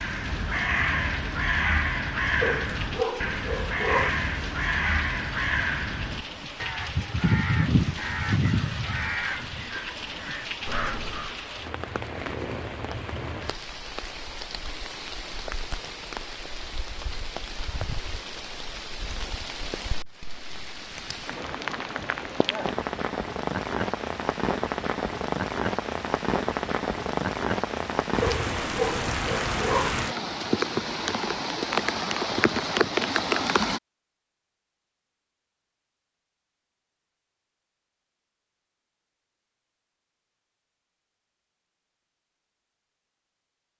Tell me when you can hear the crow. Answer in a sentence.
You can hear the crow from 0.0 to 11.4 s.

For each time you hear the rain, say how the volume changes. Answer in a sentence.
You can hear the rain from 0.0 to 33.8 s, getting louder.